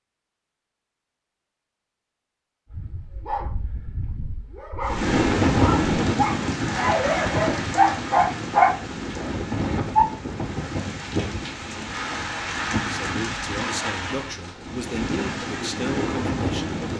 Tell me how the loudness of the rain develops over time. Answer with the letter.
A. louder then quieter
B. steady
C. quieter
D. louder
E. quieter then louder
C.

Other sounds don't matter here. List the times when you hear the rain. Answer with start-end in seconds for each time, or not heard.
4.8-16.9.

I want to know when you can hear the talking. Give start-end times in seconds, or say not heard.
13.0-16.8.